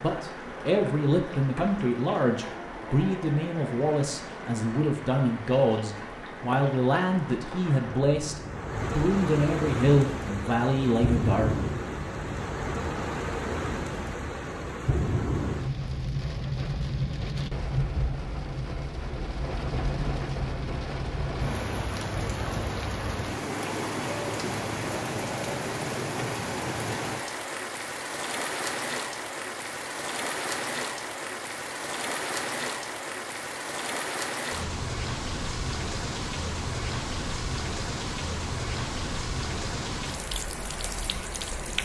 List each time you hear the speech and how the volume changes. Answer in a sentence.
You can hear the speech from 0.0 to 11.5 s, at a steady volume.